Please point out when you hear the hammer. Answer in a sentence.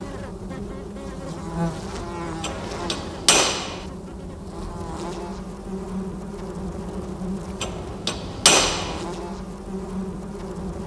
You can hear the hammer from 2.4 to 3.9 s and from 7.6 to 9.1 s.